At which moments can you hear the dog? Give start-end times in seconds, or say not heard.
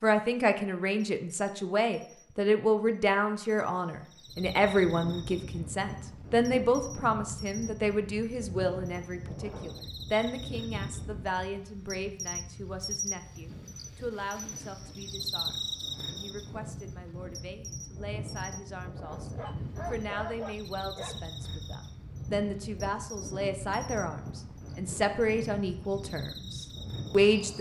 19.4-21.2.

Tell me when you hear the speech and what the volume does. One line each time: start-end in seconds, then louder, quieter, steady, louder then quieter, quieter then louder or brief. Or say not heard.
0.0-27.5 quieter then louder.